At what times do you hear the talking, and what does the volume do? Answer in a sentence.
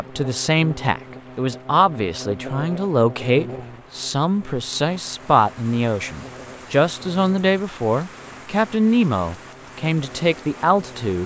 The talking can be heard from 0.0 to 11.2 s, at a steady volume.